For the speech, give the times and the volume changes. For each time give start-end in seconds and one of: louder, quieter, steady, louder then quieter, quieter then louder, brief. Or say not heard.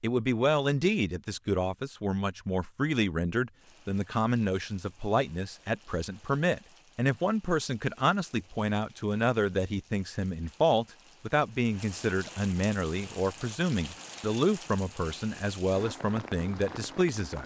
0.0-17.4 steady.